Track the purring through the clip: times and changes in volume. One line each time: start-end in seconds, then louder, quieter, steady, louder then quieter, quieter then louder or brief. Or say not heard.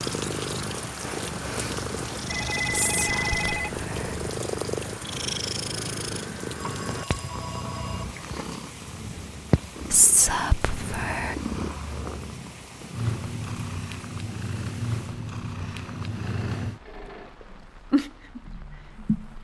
0.0-19.4 steady.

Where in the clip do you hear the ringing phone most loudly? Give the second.
3 s.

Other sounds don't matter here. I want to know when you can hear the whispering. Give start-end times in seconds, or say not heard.
2.8-4.2, 9.9-11.3.